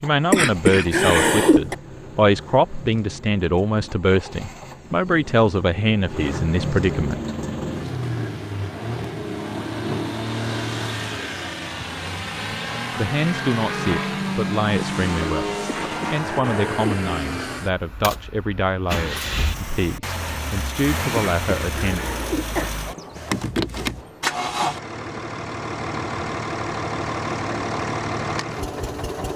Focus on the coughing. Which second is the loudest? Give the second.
1 s.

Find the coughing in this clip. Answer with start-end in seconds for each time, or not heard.
0.3-1.8, 15.7-16.9, 21.1-22.7.